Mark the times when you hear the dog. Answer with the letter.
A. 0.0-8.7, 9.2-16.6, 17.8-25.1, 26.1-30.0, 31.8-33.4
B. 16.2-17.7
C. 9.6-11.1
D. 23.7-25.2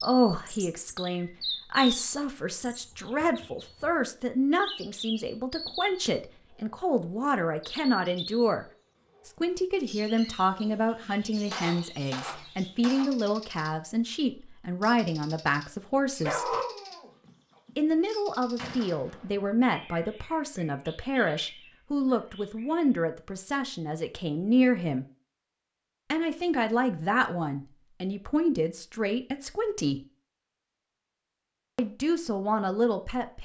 B.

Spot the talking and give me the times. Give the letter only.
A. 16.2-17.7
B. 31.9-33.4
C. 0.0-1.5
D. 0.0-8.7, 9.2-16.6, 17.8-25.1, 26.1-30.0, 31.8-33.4
D.